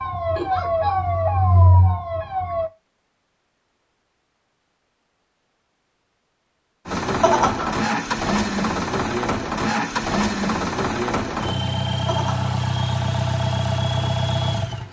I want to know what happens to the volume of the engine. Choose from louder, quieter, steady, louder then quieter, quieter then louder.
steady.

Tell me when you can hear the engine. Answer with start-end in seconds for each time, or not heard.
6.8-14.8.